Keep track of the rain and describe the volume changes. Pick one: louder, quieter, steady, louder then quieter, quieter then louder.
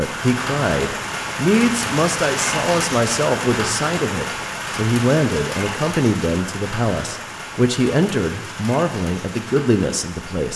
quieter.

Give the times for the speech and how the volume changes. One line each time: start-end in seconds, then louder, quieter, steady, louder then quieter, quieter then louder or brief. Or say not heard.
0.0-10.5 steady.